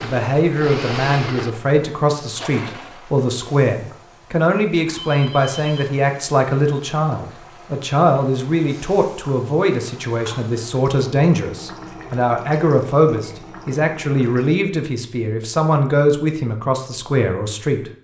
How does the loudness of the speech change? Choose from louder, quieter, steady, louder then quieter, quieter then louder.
steady.